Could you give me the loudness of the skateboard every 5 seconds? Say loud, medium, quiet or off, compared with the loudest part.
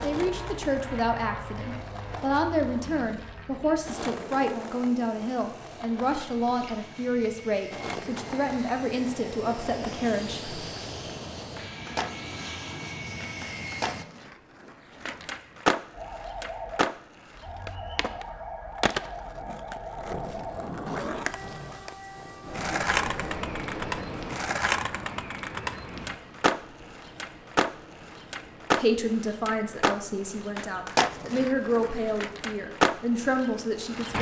medium, medium, medium, loud, loud, loud, loud.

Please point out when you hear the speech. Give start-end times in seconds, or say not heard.
0.0-10.6, 28.8-34.1.